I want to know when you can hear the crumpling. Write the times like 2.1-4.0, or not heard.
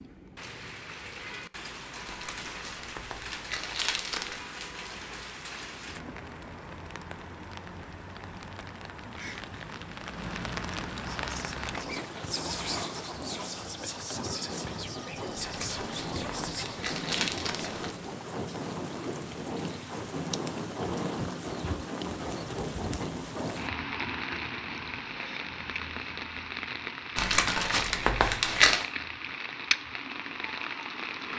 2.0-4.5, 15.4-17.9, 27.1-28.9.